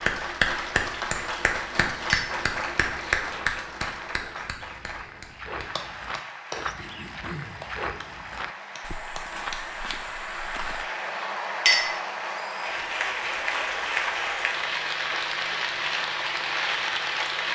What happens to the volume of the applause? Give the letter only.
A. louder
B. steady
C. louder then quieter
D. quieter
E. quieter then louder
E.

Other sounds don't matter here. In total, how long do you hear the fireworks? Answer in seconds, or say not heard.
not heard.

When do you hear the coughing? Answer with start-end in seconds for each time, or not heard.
6.8-7.6.